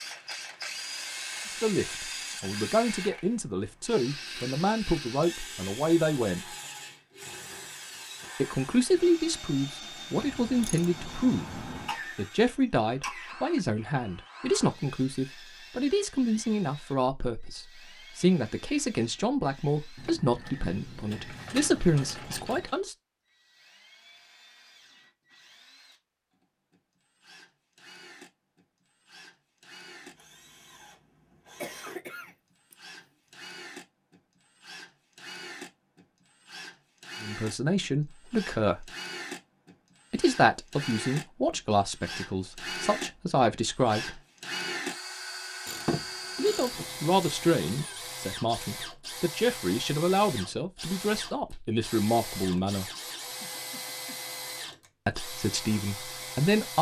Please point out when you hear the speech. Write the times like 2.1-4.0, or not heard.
1.6-6.5, 8.4-22.9, 37.2-38.9, 40.1-44.2, 46.4-52.9, 55.0-56.7.